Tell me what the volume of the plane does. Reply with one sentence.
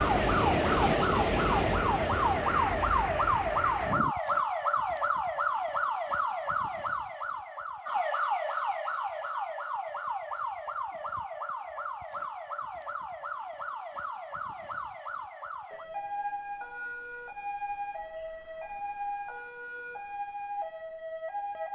The volume of the plane goes down.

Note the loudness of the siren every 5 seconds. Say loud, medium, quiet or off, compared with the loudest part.
loud, loud, medium, medium, medium.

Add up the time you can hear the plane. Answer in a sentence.
The plane can be heard for 4 seconds in total.